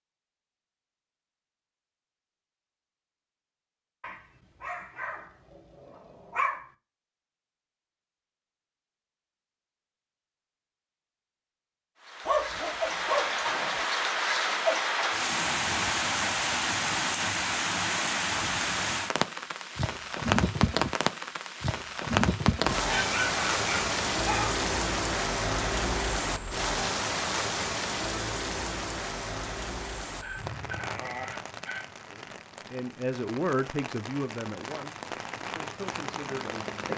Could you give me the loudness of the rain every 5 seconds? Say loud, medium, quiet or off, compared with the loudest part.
off, off, loud, loud, loud, loud, quiet, medium.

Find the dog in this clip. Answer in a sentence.
The dog can be heard from 4.0 to 6.7 s, from 12.2 to 13.8 s, from 22.7 to 24.6 s and from 30.1 to 32.0 s.